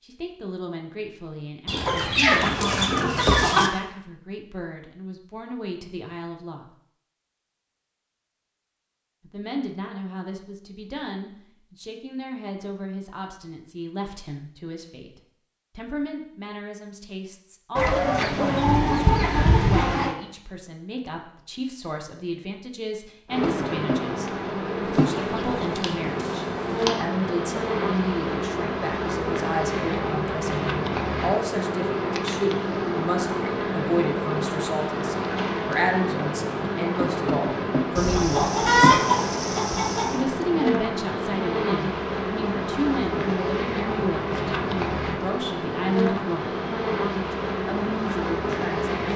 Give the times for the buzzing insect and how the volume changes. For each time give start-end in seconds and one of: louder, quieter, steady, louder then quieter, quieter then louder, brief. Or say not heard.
23.2-49.1 steady.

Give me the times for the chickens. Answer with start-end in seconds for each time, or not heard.
1.6-3.7, 17.8-20.1, 24.9-26.9, 38.0-40.2.